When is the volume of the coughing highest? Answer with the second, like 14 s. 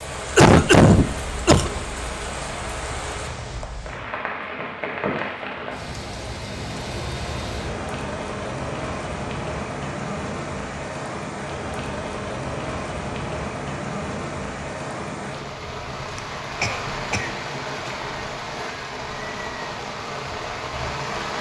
1 s.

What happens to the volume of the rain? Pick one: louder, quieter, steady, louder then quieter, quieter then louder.
steady.